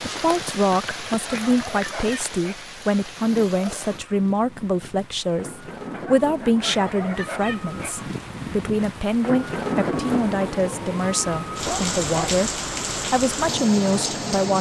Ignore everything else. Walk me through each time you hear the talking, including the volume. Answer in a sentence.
You can hear the talking from 0.0 to 14.5 s, at a steady volume.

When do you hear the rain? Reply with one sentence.
The rain can be heard from 0.0 to 14.5 s.